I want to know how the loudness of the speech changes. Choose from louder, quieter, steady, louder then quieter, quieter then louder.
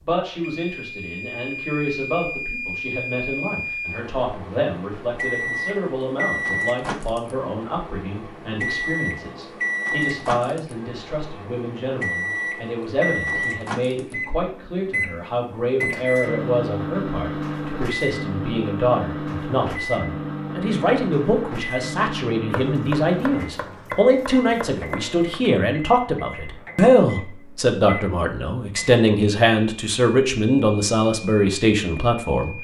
louder.